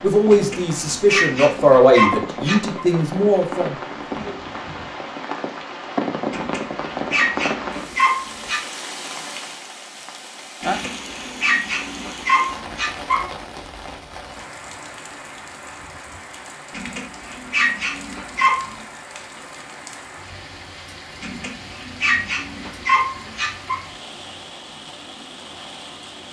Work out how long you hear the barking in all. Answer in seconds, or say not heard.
12 s.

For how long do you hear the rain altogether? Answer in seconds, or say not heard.
26 s.